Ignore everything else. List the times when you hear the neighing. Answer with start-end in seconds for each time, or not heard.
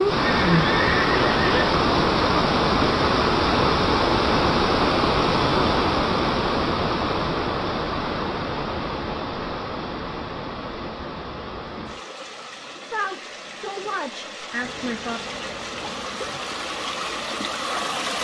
0.1-1.8.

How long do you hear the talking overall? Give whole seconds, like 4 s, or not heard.
2 s.